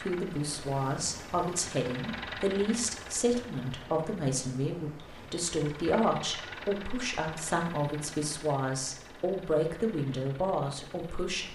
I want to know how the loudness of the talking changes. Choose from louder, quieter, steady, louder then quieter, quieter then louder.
steady.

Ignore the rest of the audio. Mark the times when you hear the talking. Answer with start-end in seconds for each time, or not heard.
0.0-11.5.